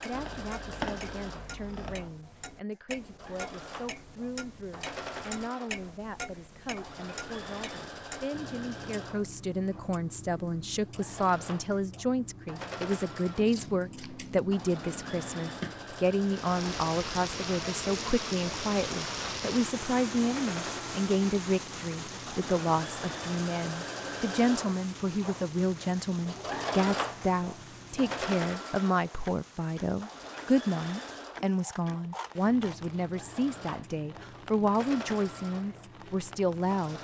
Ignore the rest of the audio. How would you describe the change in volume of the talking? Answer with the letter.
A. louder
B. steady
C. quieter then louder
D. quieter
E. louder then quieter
A.